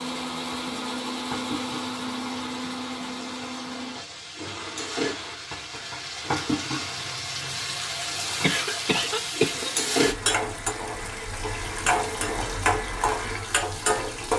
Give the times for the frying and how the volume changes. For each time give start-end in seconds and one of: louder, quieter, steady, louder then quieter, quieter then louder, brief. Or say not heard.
0.0-14.3 louder.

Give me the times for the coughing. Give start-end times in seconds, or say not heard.
8.4-9.8.